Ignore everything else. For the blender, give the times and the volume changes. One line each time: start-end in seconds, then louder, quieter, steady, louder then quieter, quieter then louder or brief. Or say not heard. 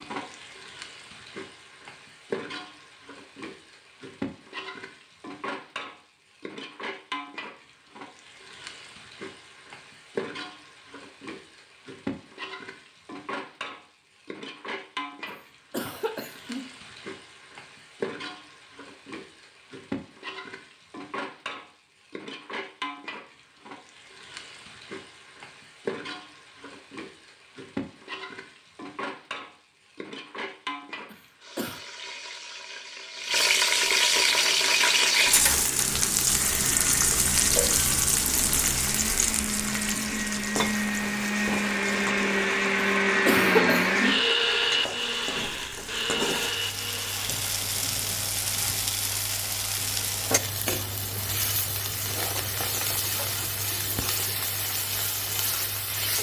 34.2-47.6 louder then quieter.